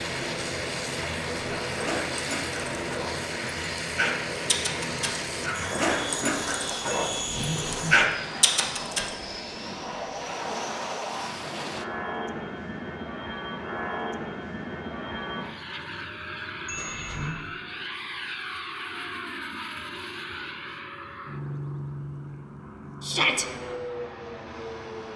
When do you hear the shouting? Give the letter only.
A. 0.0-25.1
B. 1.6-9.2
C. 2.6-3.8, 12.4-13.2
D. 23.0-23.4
D.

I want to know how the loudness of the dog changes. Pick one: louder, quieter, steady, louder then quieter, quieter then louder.
louder.